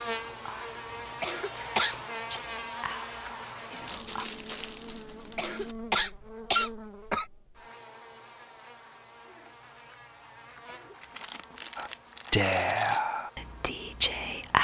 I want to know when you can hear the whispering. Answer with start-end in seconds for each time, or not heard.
0.0-4.2, 11.8-14.5.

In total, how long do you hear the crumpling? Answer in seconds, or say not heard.
4 s.